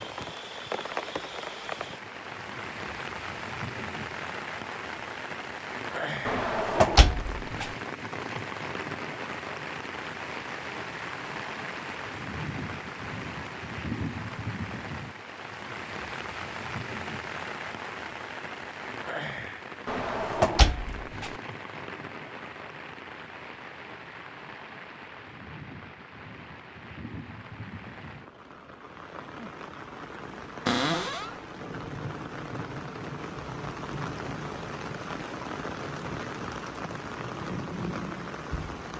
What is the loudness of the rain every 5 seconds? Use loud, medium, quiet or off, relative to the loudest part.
loud, loud, loud, loud, medium, medium, loud, loud.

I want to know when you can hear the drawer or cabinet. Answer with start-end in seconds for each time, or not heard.
6.2-7.7, 19.9-21.4, 30.6-31.3.